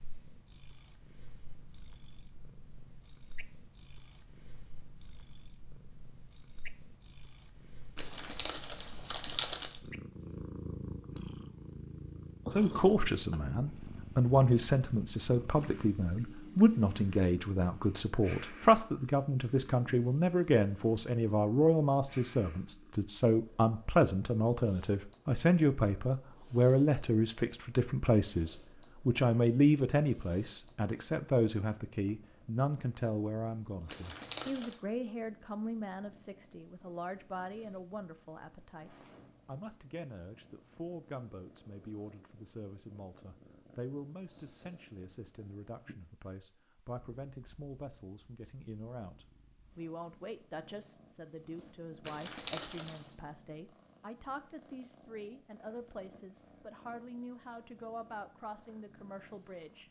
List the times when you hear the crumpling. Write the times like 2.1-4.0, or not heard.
8.0-9.8, 33.9-34.8, 52.0-53.0.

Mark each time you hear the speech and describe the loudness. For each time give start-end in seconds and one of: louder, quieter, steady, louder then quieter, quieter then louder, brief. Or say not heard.
12.5-59.8 quieter.